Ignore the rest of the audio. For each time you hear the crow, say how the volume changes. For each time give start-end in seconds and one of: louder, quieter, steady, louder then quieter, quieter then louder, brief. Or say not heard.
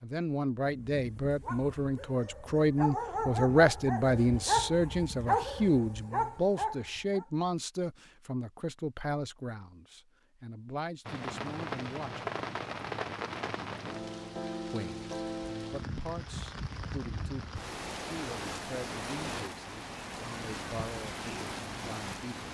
not heard.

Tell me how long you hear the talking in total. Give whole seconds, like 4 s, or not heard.
20 s.